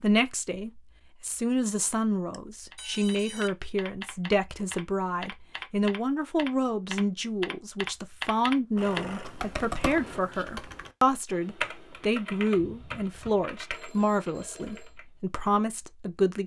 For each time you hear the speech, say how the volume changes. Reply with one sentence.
You can hear the speech from 0.0 to 16.4 s, at a steady volume.